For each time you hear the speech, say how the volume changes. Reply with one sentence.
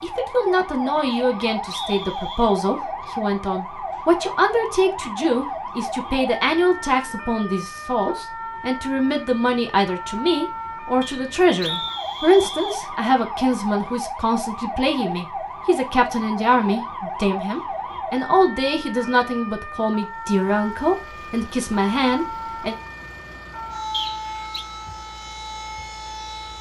The speech can be heard from 0.0 to 22.8 s, at a steady volume.